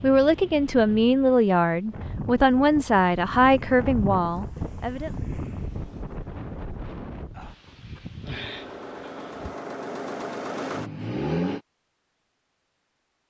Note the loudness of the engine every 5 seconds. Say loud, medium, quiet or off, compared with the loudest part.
off, medium, loud.